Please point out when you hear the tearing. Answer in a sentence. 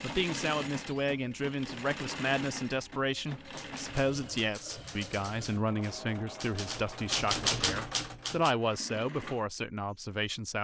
The tearing can't be heard in this clip.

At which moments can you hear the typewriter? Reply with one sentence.
You can hear the typewriter from 3.5 to 8.6 s.